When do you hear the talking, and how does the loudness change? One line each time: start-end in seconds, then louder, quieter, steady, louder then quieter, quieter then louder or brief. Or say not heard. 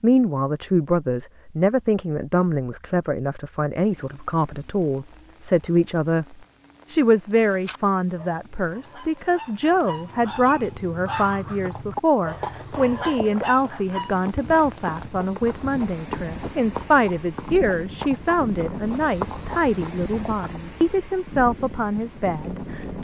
0.0-22.9 steady.